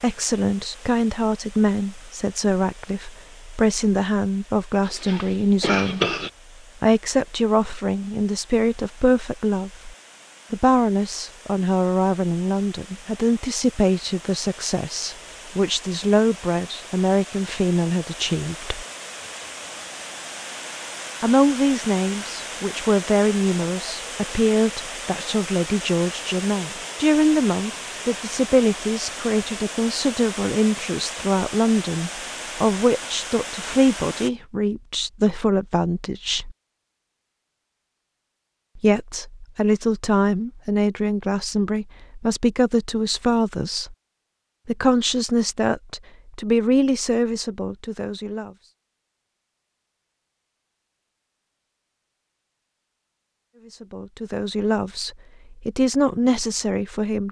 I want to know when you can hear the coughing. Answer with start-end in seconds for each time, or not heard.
4.8-6.3.